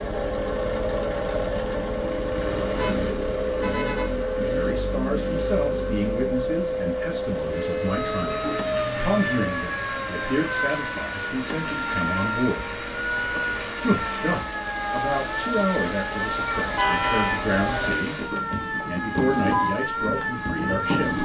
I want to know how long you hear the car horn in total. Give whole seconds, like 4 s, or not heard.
3 s.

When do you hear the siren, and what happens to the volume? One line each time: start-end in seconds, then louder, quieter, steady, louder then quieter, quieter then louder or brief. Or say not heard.
0.0-21.1 steady.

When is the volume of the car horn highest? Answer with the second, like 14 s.
17 s.